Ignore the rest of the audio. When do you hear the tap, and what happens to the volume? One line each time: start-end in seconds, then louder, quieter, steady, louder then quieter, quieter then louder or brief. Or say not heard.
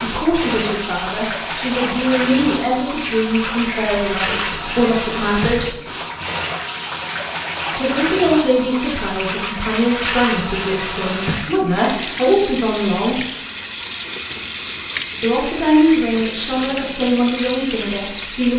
0.0-18.5 steady.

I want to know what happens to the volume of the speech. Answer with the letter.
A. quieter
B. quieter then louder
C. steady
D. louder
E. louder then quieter
C.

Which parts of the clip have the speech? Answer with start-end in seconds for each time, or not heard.
0.0-5.8, 7.8-13.2, 15.2-18.5.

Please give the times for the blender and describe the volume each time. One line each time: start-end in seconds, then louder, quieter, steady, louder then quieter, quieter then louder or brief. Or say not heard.
not heard.